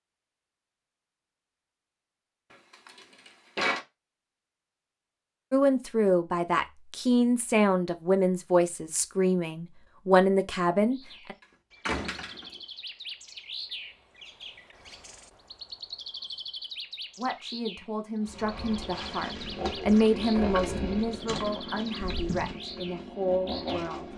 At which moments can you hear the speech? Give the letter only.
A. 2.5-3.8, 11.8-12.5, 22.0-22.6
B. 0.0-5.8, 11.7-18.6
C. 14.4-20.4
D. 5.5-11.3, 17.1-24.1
D.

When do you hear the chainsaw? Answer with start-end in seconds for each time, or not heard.
18.2-24.1.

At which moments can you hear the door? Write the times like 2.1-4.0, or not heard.
2.5-3.8, 11.8-12.5, 22.0-22.6.